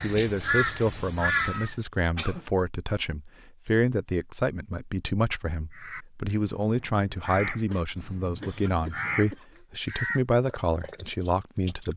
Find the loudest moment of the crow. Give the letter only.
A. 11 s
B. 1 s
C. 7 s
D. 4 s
B.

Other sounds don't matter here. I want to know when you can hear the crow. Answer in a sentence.
The crow can be heard from 0.0 to 1.8 s and from 5.7 to 11.9 s.